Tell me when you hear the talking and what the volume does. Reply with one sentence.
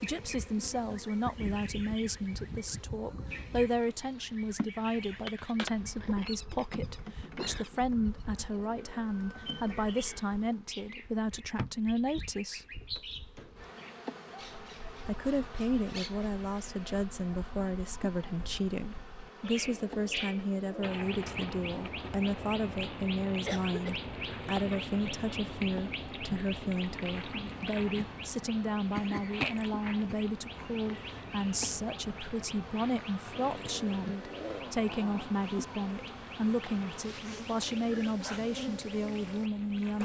The talking can be heard from 0.0 to 12.7 s, at a steady volume; and from 15.1 to 40.0 s, at a steady volume.